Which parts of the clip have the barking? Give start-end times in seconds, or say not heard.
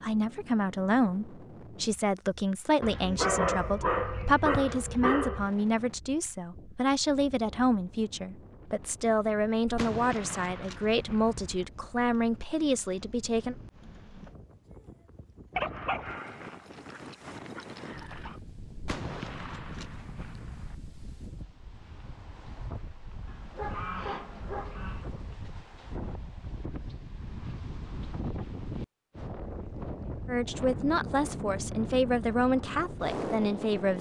2.8-5.5, 15.6-18.4, 23.2-25.1.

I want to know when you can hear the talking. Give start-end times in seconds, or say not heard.
0.0-13.6, 30.2-33.9.